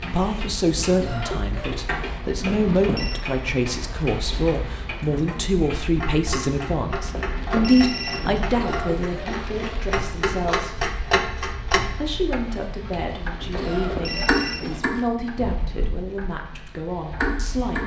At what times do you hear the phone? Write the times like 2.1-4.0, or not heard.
2.4-3.2, 7.1-8.4, 13.5-14.8.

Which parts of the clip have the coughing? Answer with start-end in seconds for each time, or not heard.
0.9-2.2, 8.5-9.8, 13.5-15.3.